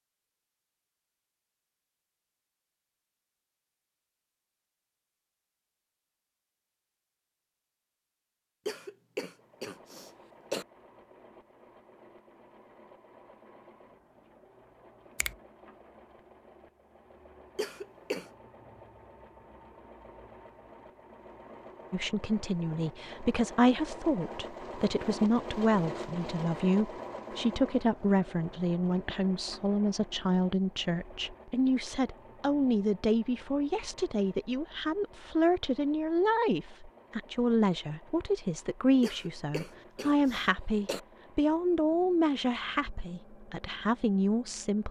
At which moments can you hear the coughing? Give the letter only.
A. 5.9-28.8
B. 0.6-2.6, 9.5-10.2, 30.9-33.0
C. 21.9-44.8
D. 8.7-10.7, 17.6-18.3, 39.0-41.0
D.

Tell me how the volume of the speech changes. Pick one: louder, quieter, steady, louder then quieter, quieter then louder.
steady.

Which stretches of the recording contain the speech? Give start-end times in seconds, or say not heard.
21.9-44.8.